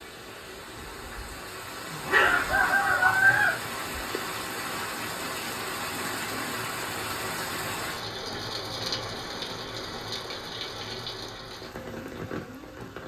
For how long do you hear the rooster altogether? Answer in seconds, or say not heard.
2 s.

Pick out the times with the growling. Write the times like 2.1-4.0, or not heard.
2.0-2.8.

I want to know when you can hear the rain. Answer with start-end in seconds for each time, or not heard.
0.0-13.0.